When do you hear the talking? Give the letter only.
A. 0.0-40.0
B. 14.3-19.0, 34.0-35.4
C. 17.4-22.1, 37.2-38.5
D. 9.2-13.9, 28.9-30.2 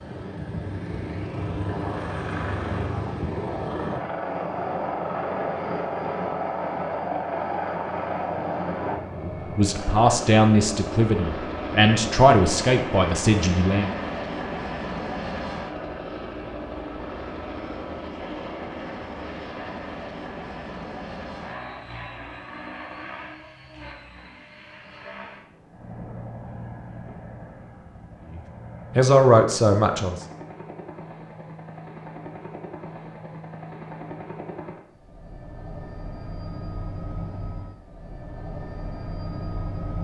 D.